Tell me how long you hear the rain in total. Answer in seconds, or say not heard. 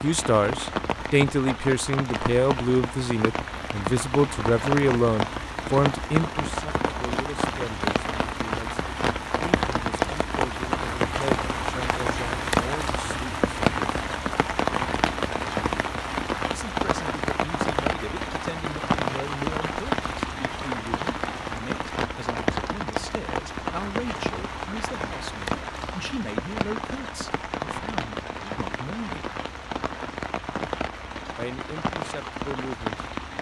33 s.